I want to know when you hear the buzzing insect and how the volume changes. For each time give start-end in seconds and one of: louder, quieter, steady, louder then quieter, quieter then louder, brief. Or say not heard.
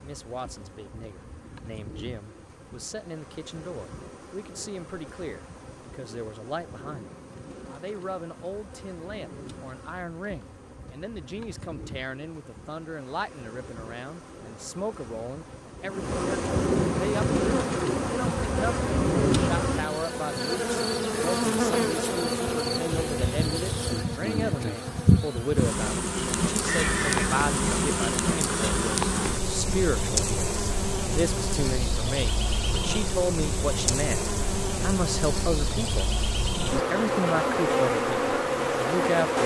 0.0-39.4 louder.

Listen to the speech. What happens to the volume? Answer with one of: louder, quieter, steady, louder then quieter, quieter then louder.
louder.